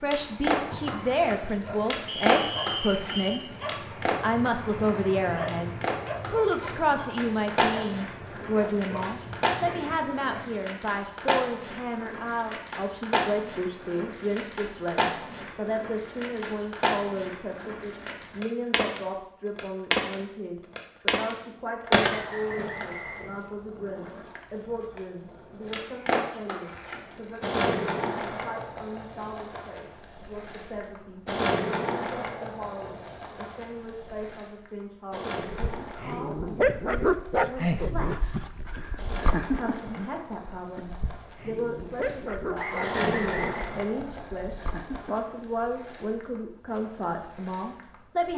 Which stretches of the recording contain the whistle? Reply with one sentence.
You can hear the whistle from 2.0 to 3.4 s, from 22.1 to 23.3 s and from 42.5 to 43.7 s.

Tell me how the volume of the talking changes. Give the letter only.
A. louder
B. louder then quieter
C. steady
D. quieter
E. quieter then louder
E.